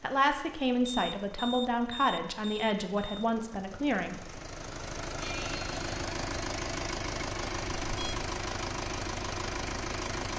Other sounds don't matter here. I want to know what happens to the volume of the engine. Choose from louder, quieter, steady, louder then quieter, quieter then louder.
louder.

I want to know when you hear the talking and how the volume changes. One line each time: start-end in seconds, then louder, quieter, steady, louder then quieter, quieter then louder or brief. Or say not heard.
0.0-4.4 steady.